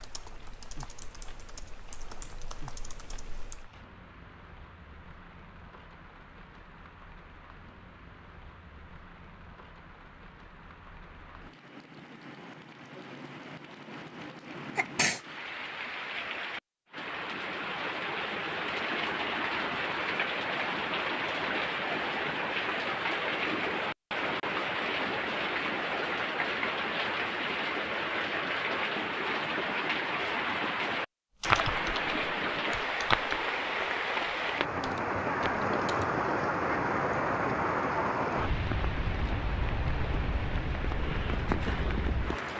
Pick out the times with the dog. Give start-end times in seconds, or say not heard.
not heard.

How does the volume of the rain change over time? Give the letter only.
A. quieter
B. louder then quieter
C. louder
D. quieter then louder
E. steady
C.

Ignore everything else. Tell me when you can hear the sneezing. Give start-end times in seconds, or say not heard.
14.8-15.2.